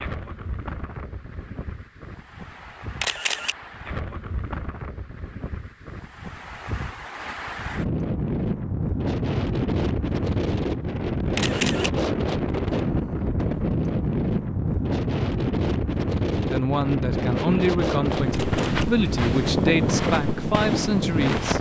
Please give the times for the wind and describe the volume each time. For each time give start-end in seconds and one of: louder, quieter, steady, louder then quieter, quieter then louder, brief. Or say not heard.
0.0-21.5 louder.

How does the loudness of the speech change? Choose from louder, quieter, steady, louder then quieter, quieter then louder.
steady.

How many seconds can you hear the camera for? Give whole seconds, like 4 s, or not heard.
2 s.